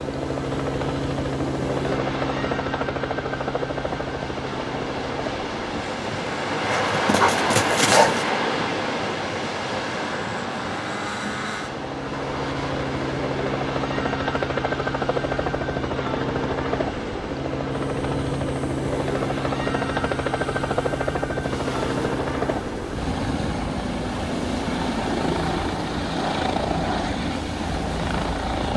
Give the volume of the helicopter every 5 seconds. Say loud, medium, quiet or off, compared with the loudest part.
loud, medium, loud, loud, loud, loud.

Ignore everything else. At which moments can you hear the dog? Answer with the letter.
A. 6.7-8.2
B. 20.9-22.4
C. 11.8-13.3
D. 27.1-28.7
A.